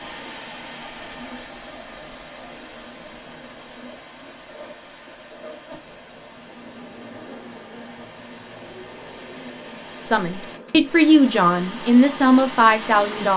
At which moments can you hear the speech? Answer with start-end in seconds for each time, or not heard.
10.1-13.3.